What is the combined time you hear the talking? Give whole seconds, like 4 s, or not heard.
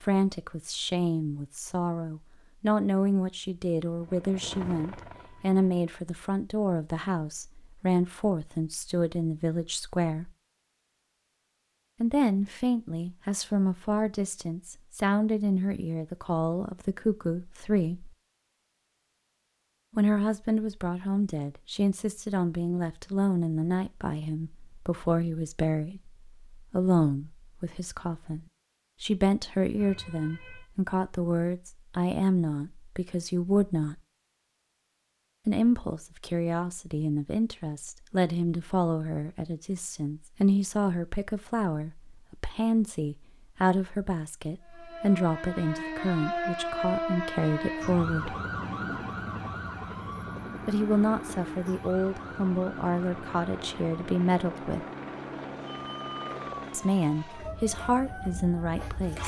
50 s.